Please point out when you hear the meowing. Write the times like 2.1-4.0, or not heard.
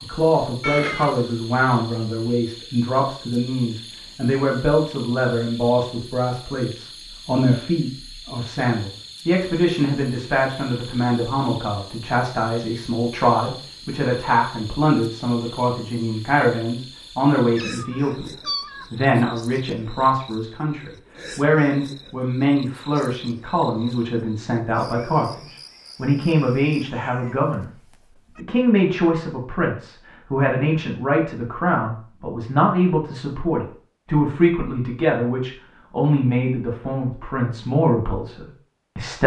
0.6-1.4, 17.6-18.9, 26.6-28.4.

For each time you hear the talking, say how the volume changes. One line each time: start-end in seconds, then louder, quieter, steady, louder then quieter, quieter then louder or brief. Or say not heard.
0.0-27.7 steady
28.4-39.2 steady.